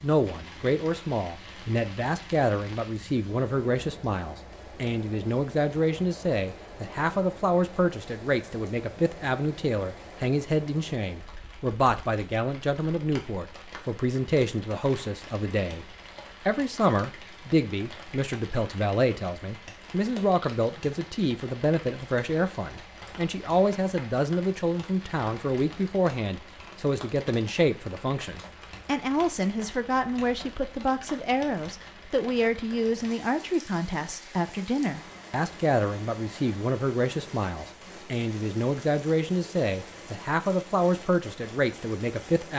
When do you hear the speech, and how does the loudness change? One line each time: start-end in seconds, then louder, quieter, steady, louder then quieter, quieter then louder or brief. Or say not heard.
0.0-42.5 steady.